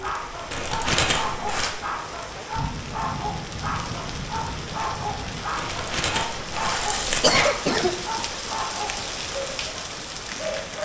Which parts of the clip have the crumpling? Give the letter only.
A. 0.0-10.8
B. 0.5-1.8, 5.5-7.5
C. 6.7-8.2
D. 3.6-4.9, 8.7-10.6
B.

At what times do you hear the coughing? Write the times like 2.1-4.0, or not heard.
6.7-8.2.